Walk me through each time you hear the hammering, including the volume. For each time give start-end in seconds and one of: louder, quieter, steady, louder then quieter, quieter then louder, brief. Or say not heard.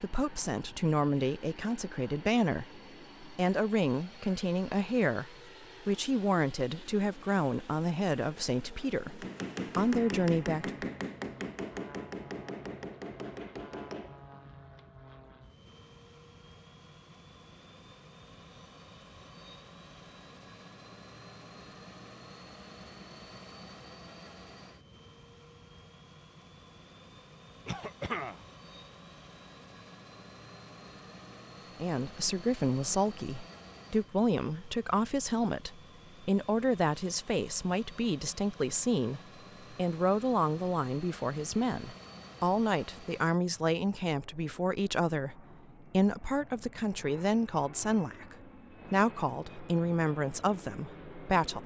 9.1-14.8 quieter.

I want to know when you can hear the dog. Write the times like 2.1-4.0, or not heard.
not heard.